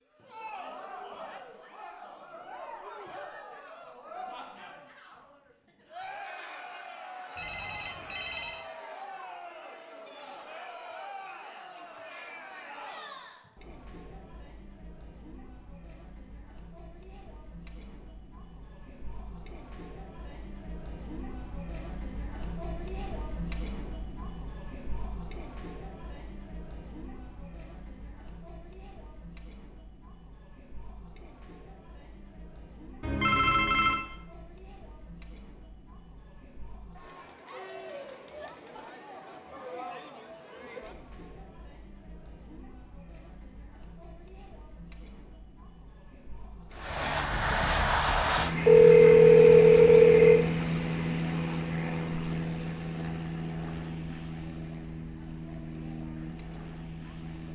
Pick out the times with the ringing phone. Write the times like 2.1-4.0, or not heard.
7.3-8.7, 33.0-34.0, 48.5-50.5.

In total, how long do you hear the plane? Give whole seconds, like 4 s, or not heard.
11 s.